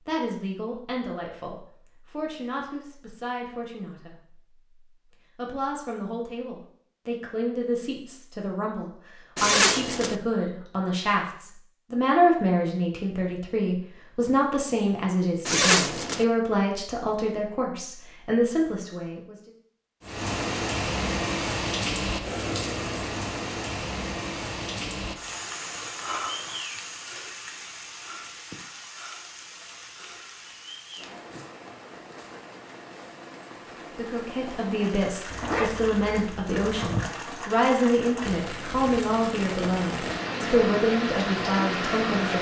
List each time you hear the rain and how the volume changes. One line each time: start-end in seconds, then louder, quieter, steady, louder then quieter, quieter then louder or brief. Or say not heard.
20.0-42.3 quieter then louder.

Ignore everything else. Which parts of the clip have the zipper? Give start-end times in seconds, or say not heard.
9.3-10.2, 15.4-16.2, 35.3-37.1.